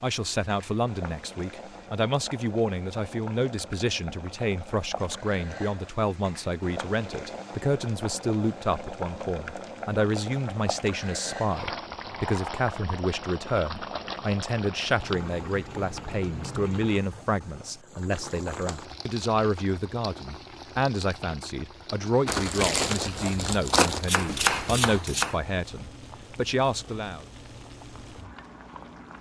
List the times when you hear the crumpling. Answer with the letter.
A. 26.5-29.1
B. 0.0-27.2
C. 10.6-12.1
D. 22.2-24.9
D.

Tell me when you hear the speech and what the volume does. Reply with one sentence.
The speech can be heard from 0.0 to 27.2 s, at a steady volume.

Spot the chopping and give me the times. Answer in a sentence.
The chopping can be heard from 23.9 to 25.4 s.